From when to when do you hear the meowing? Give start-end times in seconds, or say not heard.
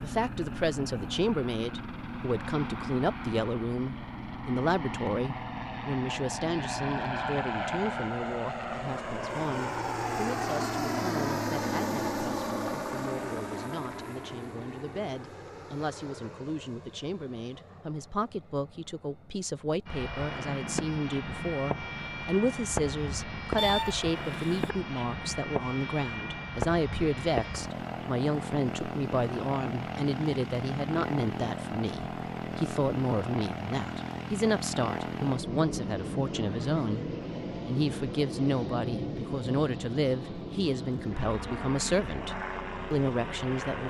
23.6-24.8.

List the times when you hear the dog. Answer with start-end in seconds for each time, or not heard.
not heard.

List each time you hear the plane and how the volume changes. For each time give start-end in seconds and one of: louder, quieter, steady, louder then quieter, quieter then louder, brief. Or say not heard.
0.0-43.8 steady.